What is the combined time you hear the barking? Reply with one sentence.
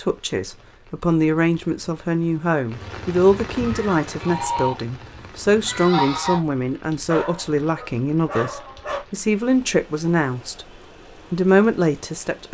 You can hear the barking for 2 seconds altogether.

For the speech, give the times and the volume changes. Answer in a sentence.
You can hear the speech from 0.0 to 10.7 s, at a steady volume; and briefly from 11.3 to 12.4 s.